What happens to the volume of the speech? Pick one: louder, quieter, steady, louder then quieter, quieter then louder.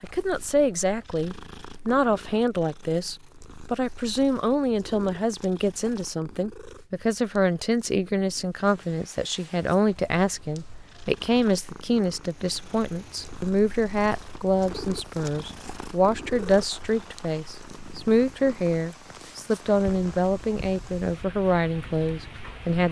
steady.